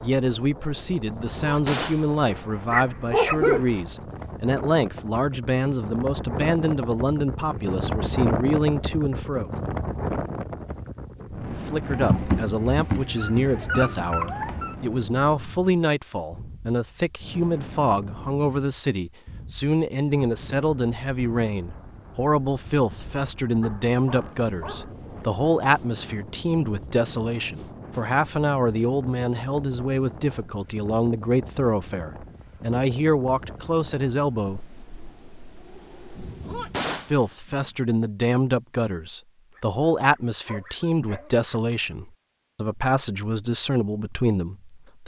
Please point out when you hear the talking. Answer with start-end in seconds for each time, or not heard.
0.0-9.5, 11.5-34.7, 37.1-45.0.